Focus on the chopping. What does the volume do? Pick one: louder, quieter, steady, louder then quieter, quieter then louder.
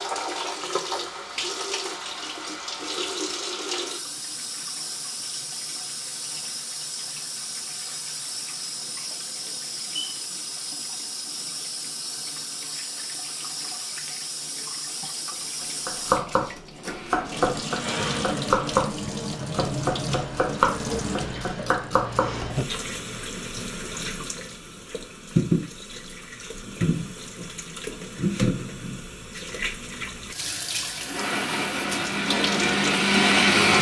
steady.